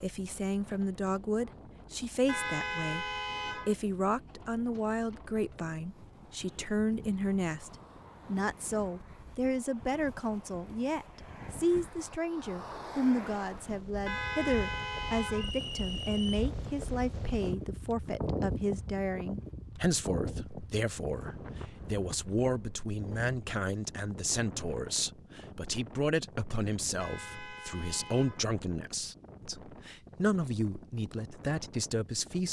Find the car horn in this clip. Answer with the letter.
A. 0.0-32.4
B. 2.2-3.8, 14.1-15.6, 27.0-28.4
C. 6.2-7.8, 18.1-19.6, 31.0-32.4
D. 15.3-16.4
B.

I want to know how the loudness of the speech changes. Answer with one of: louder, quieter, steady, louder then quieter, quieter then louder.
steady.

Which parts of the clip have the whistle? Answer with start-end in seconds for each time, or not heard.
15.3-16.4.